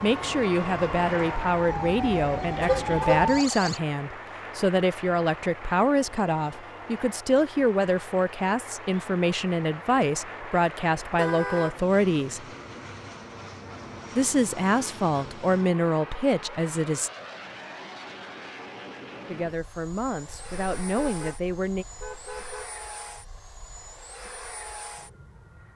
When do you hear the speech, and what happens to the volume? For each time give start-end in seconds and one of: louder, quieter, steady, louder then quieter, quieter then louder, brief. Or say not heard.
0.0-12.4 steady
14.2-17.1 brief
19.2-21.9 brief.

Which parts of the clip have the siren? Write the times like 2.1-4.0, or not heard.
0.0-3.8.